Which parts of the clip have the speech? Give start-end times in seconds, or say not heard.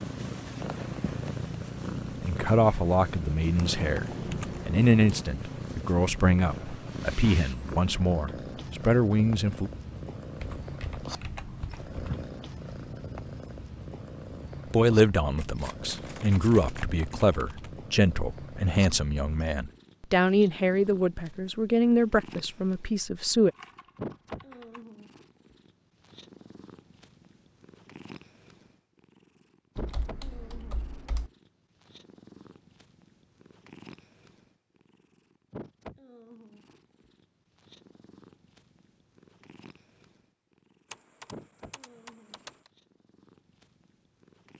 2.2-4.0, 4.7-9.7, 14.7-23.5.